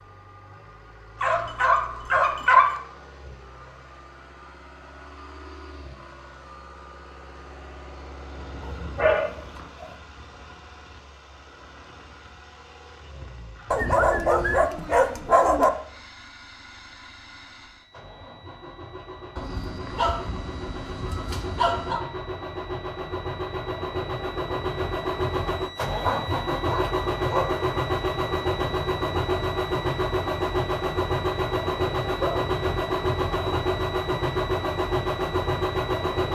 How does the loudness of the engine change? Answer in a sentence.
The volume of the engine goes up.